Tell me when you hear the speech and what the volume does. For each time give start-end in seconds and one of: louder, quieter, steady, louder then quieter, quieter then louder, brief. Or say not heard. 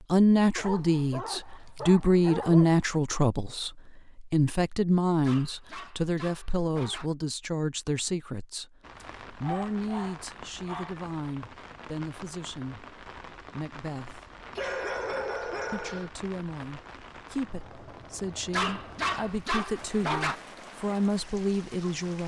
0.1-14.2 quieter
15.7-22.2 louder.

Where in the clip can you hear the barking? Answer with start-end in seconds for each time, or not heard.
0.6-2.8, 5.2-7.1, 9.0-10.9, 14.6-16.1, 18.5-20.4.